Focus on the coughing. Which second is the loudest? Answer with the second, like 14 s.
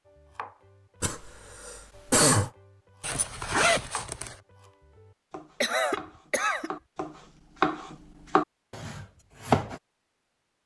2 s.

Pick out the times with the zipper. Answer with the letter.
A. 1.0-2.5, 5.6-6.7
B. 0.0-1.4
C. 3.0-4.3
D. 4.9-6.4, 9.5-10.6
C.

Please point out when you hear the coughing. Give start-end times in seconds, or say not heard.
1.0-2.5, 5.6-6.7.